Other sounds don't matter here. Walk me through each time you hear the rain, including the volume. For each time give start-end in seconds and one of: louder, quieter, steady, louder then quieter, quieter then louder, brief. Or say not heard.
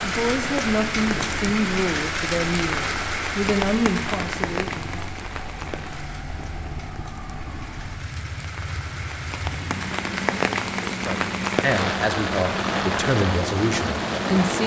0.0-14.6 quieter then louder.